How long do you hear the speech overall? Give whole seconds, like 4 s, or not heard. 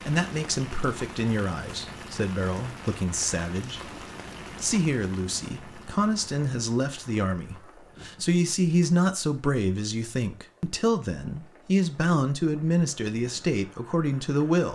14 s.